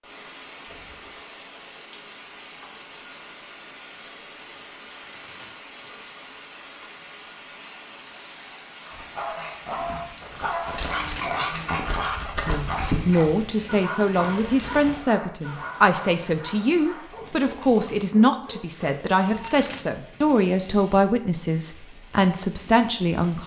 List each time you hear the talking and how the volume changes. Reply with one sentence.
You can hear the talking from 12.4 to 23.4 s, at a steady volume.